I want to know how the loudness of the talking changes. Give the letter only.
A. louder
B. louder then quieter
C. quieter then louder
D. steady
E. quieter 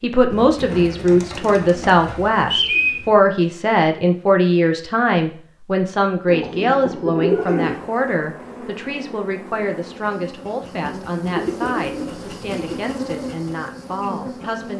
E.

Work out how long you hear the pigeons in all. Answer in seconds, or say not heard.
6 s.